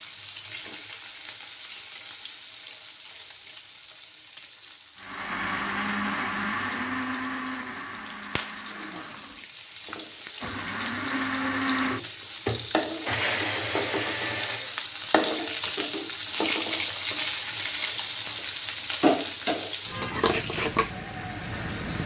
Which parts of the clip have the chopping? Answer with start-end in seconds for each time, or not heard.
not heard.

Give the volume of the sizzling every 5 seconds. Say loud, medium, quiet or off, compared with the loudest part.
quiet, quiet, medium, loud, loud.